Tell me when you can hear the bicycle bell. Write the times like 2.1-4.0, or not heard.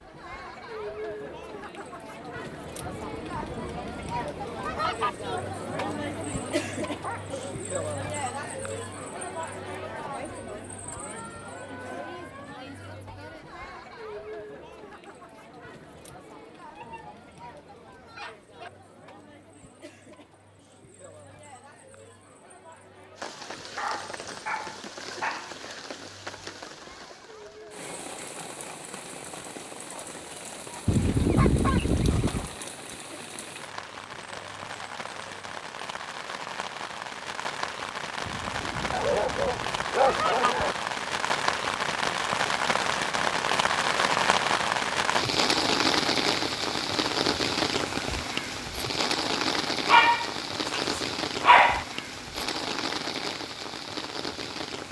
not heard.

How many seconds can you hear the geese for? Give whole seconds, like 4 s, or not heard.
6 s.